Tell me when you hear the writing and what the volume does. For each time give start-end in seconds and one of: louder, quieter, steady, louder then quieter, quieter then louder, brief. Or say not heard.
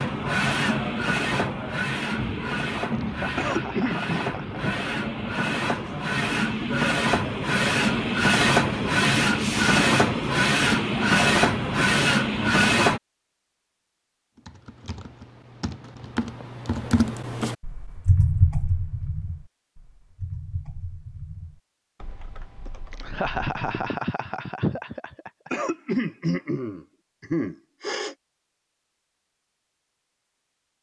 not heard.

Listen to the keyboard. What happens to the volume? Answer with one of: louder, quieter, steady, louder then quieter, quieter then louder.
louder then quieter.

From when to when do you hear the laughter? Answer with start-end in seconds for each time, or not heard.
2.9-4.9, 22.9-25.5.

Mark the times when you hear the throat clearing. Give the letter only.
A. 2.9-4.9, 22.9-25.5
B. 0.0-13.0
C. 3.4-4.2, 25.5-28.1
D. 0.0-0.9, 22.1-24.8
C.